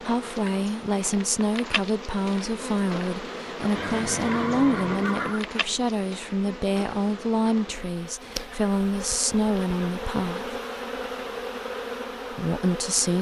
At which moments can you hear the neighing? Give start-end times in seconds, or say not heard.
3.8-5.5.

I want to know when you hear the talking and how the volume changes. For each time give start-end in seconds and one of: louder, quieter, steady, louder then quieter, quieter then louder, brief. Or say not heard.
0.0-10.6 steady
12.3-13.1 brief.